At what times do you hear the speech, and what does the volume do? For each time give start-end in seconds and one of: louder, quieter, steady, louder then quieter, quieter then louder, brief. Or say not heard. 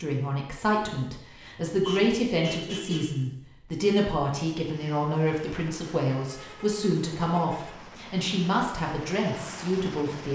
0.0-10.3 steady.